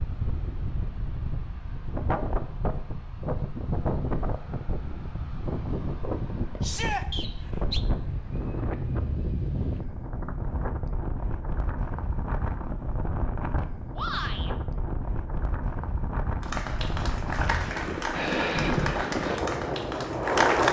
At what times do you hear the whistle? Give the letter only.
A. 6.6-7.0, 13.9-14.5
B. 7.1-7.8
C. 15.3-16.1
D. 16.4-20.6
B.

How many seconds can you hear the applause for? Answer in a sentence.
The applause can be heard for 4 seconds in total.